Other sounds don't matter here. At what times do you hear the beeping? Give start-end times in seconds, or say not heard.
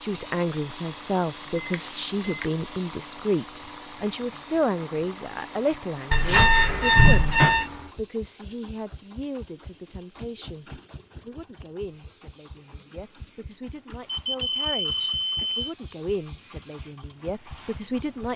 1.6-2.5, 6.1-7.7, 14.1-15.7.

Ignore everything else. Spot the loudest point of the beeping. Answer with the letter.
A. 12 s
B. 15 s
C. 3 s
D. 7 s
D.